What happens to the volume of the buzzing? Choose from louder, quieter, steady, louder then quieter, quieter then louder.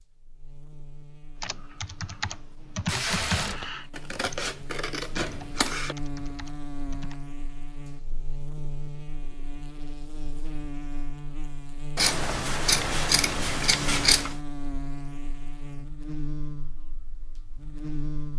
louder.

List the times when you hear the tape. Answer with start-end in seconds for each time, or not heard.
2.9-3.7.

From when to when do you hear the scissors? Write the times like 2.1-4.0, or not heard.
4.0-6.0, 11.9-14.3.